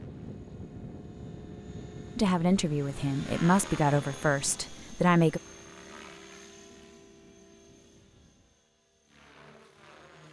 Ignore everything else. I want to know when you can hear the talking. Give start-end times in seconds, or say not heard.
2.1-5.4.